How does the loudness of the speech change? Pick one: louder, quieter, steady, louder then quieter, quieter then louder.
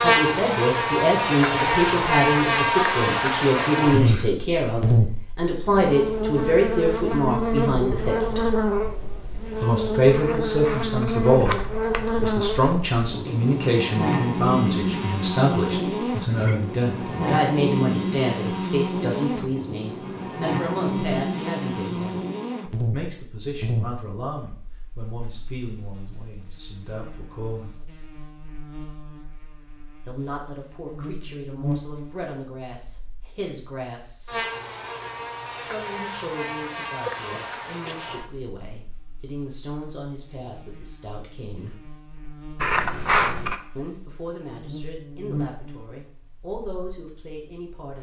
quieter.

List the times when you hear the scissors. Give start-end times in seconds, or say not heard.
10.2-12.1, 42.6-43.6.